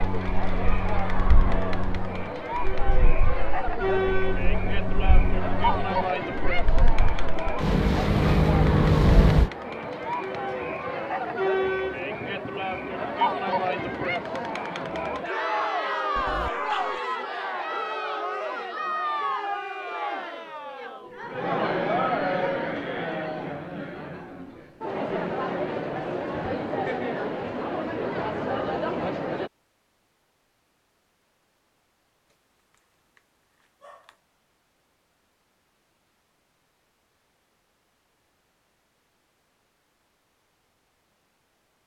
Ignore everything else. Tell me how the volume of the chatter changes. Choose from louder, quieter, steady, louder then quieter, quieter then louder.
steady.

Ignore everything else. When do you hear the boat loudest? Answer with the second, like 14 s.
9 s.